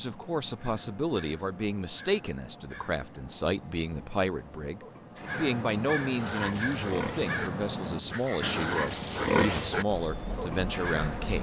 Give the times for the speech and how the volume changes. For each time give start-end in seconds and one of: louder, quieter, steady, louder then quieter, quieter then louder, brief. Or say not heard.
0.0-11.3 steady.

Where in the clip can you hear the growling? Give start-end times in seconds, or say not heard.
not heard.